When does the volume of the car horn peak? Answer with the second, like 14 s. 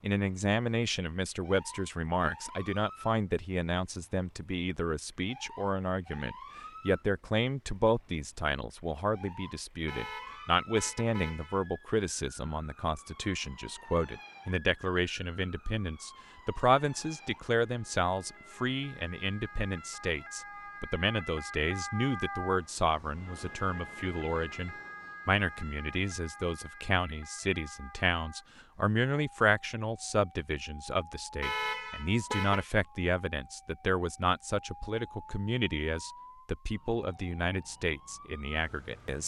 32 s.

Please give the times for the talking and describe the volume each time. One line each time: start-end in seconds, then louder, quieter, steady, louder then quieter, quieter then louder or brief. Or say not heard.
0.0-39.2 steady.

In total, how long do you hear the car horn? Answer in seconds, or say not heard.
3 s.